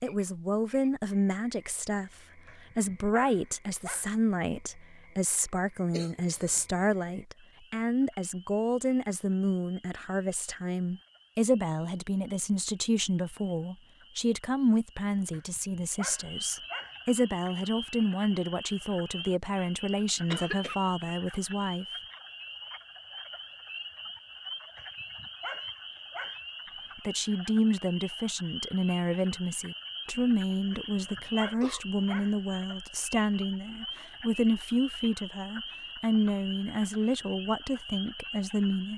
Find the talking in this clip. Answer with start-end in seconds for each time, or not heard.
0.0-21.9, 26.9-38.9.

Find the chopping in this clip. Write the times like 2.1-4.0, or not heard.
not heard.